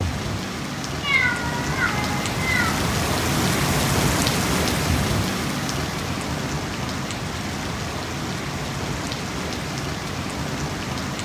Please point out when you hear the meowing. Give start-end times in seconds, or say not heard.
1.0-2.7.